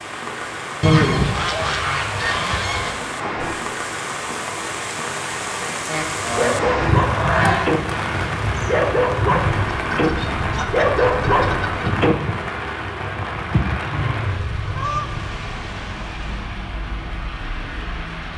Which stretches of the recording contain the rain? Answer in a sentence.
You can hear the rain from 0.0 to 18.3 s.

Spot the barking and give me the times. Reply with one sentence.
You can hear the barking from 6.3 to 7.8 s, from 8.7 to 10.1 s and from 10.7 to 12.6 s.